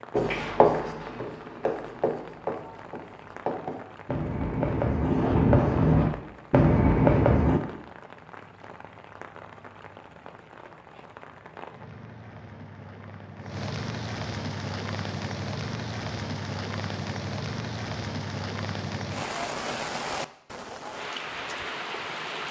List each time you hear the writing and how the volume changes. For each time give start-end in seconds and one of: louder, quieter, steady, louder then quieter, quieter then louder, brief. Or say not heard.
0.1-7.6 quieter then louder.